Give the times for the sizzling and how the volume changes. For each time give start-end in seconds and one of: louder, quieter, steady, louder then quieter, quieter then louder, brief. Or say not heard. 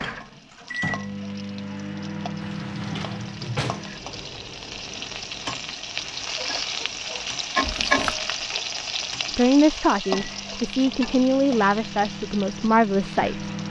0.0-13.6 louder then quieter.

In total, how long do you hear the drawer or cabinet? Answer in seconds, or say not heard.
2 s.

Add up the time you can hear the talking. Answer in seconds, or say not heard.
4 s.